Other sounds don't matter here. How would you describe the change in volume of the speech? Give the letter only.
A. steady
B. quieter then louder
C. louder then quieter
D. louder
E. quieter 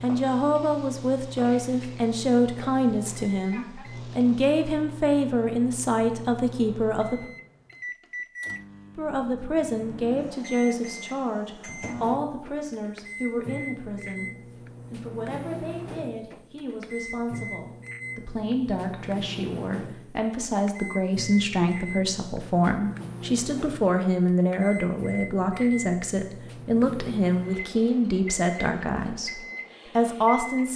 B.